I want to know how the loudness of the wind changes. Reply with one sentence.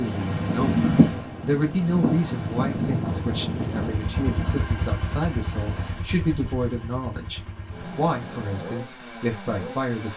The volume of the wind goes down.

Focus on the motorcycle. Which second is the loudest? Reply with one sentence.
The volume of the motorcycle peaks at 3 seconds.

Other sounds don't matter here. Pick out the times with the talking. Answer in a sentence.
The talking can be heard from 0.0 to 10.1 s.